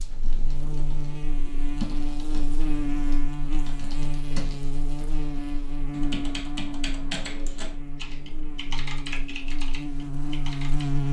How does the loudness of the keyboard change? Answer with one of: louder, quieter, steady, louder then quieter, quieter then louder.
quieter then louder.